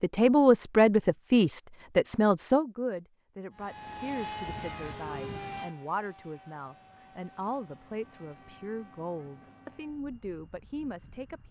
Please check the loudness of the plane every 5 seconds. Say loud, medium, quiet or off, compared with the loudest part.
loud, medium, quiet.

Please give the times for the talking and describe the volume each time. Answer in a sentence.
The talking can be heard from 0.0 to 11.4 s, getting quieter.